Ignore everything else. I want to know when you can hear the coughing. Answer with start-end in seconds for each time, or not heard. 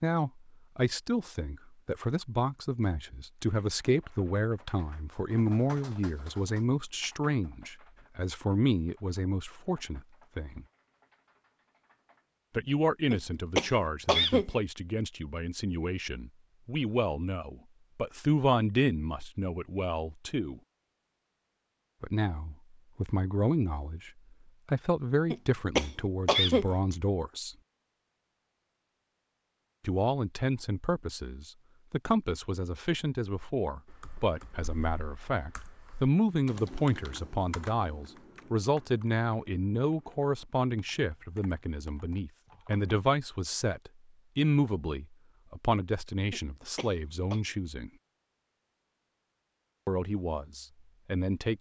13.1-14.5, 25.3-26.7, 46.3-47.4.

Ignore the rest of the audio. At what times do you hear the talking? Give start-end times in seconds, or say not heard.
0.0-10.7, 12.6-20.6, 22.0-27.6, 29.8-47.9, 49.9-51.5.